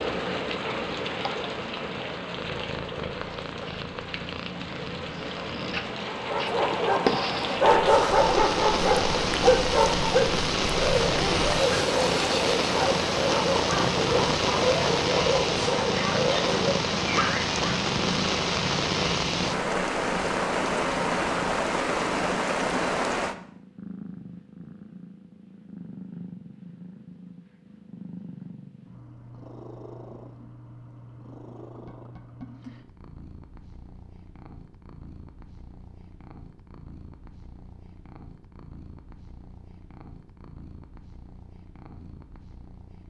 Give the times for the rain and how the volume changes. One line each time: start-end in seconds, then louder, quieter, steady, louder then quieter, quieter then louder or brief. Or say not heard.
0.0-23.4 louder.